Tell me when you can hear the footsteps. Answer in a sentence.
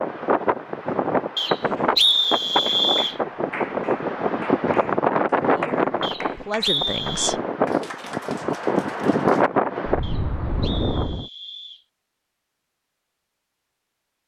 The footsteps can't be heard in this clip.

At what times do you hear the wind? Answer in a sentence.
The wind can be heard from 0.0 to 11.2 s.